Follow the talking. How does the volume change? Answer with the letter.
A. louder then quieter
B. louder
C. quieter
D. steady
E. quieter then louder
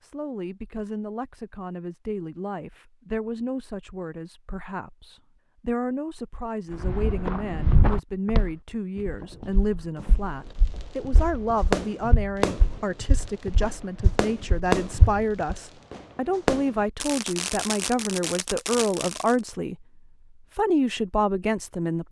B.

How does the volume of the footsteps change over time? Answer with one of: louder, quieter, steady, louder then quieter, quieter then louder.
quieter then louder.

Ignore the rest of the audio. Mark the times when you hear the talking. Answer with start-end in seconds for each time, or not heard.
0.0-22.0.